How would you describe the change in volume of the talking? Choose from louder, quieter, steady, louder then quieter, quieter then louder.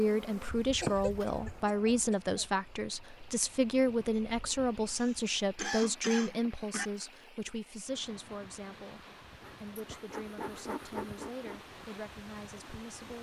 quieter.